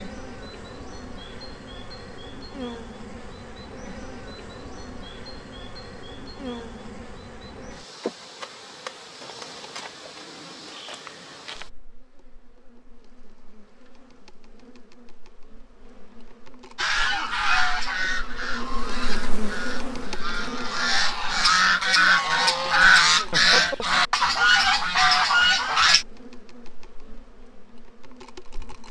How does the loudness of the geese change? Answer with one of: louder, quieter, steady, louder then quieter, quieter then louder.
quieter then louder.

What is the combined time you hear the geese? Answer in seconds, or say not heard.
9 s.